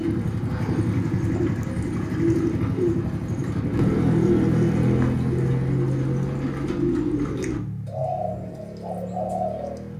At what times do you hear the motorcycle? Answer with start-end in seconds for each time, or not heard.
0.0-9.9.